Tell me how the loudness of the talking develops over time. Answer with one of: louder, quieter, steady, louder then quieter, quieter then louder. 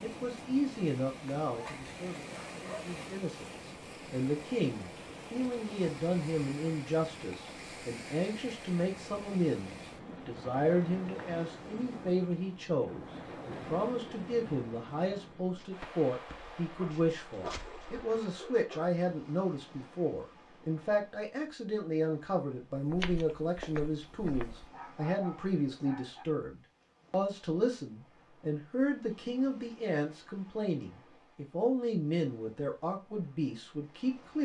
steady.